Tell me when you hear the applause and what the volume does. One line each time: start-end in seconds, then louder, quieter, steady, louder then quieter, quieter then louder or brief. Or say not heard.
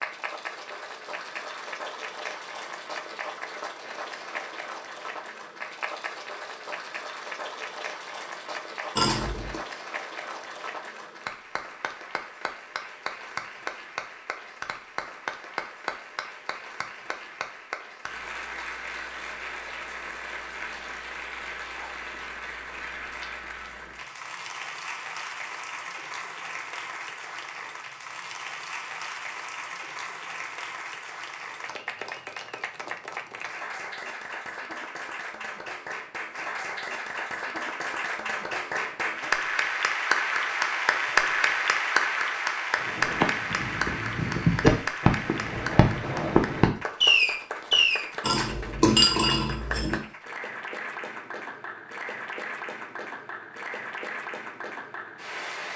0.0-55.7 louder then quieter.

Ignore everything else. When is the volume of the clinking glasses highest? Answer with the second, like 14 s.
49 s.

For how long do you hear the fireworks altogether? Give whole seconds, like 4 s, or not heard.
5 s.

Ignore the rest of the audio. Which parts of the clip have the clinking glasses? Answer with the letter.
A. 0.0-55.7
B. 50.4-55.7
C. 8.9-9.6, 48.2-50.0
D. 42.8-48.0
C.